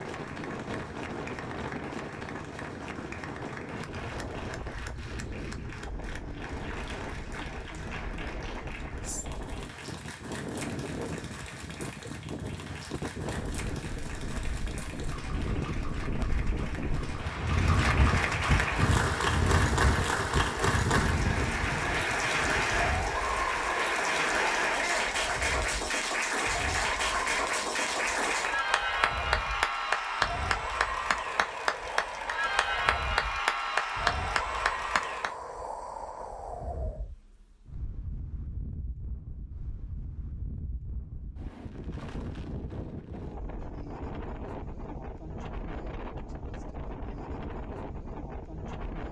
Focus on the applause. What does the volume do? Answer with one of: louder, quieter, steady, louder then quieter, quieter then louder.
louder.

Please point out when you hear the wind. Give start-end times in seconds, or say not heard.
0.0-49.0.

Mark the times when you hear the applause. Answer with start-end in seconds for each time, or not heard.
0.0-35.3.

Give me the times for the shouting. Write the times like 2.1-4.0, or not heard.
24.7-25.1.